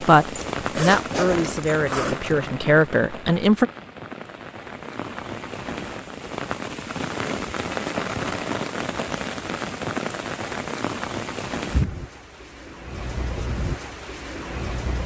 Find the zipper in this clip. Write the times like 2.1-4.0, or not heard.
0.3-2.4.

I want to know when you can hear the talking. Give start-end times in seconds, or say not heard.
0.0-3.7.